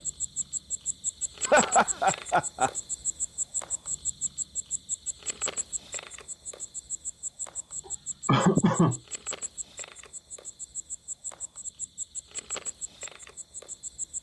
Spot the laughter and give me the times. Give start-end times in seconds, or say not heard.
1.4-2.7, 8.2-9.0.